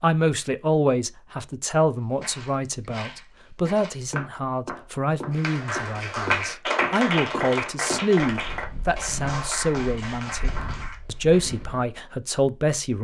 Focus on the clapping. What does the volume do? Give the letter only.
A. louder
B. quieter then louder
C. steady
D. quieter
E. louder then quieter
D.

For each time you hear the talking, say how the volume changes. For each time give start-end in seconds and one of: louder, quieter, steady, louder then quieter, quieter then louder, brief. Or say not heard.
0.0-12.9 steady.